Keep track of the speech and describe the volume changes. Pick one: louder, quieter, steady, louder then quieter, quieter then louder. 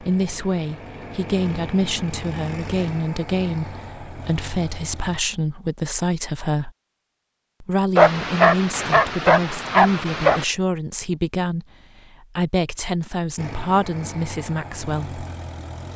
steady.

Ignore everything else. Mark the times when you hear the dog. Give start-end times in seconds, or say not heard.
8.0-10.4.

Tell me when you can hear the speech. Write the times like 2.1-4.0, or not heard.
0.0-6.7, 7.6-15.2.